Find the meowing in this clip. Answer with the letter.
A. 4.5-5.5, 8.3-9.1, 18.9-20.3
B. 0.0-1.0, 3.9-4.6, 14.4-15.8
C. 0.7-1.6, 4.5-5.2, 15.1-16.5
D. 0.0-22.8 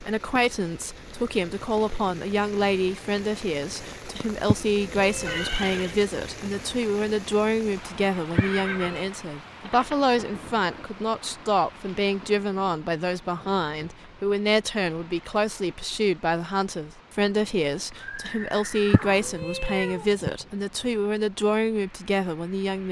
A.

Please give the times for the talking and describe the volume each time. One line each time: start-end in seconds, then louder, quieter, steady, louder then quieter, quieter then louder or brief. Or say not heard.
0.0-22.8 steady.